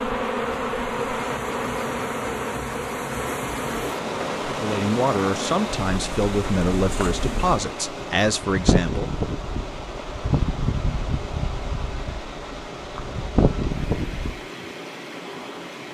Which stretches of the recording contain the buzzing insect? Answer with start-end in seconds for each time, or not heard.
0.0-14.4.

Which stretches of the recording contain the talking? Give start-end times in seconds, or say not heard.
4.5-9.1.